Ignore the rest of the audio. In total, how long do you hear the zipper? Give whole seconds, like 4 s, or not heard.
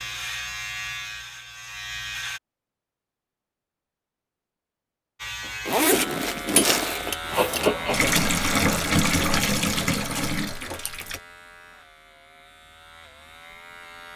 2 s.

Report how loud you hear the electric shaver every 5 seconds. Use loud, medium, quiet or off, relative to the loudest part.
loud, loud, quiet.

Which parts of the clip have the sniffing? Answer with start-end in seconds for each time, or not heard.
7.3-8.2.